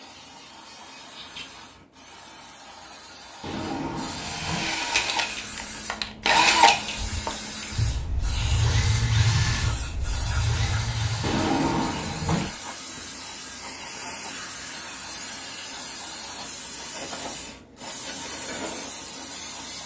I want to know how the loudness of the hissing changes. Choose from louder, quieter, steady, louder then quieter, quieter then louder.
louder.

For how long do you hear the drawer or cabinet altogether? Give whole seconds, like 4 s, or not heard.
3 s.